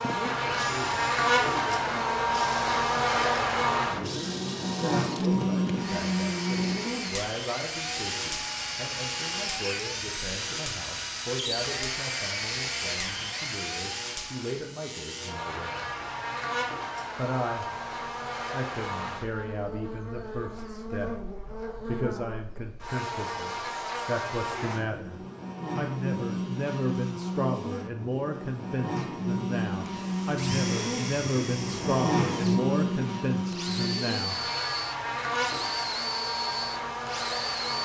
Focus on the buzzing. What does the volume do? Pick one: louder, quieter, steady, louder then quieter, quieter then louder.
quieter then louder.